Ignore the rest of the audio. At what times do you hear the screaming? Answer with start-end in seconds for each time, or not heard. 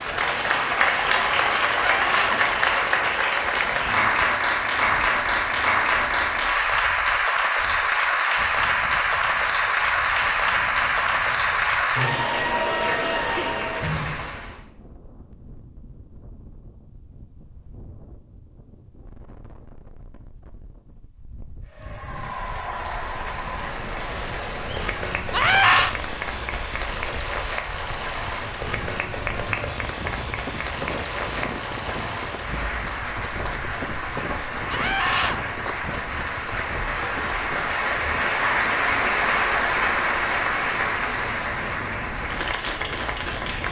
1.8-2.4, 25.3-25.9, 34.7-35.4.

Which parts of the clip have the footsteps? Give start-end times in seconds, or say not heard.
not heard.